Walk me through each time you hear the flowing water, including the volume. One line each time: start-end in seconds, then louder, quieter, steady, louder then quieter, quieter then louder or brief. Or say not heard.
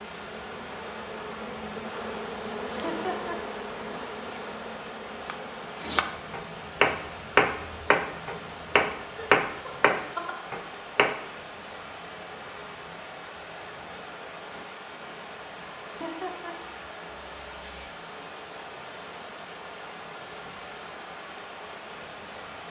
0.0-22.6 steady.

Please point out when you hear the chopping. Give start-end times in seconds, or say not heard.
5.2-11.2.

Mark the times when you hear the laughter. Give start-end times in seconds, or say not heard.
2.8-3.4, 9.2-10.3, 15.8-16.6.